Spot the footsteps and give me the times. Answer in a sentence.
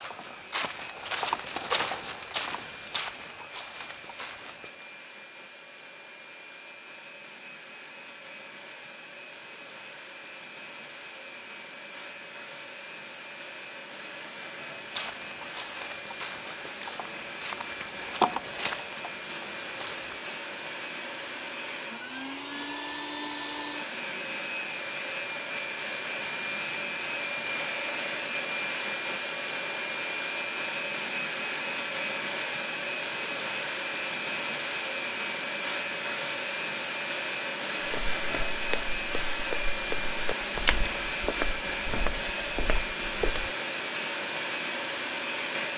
The footsteps can be heard from 0.0 to 4.9 s, from 14.8 to 20.4 s and from 37.9 to 43.5 s.